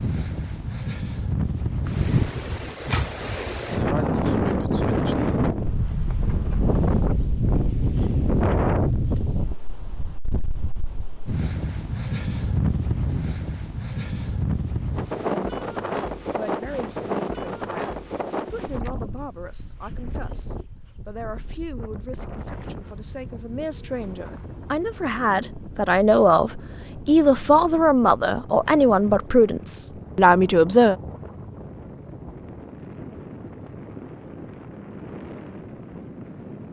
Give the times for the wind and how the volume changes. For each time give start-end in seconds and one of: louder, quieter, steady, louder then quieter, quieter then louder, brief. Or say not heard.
0.0-36.6 quieter.